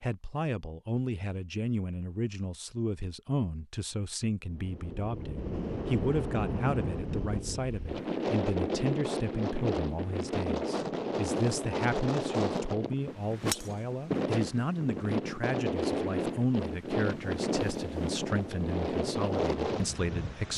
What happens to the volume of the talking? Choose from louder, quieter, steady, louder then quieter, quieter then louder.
steady.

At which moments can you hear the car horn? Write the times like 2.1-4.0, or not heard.
not heard.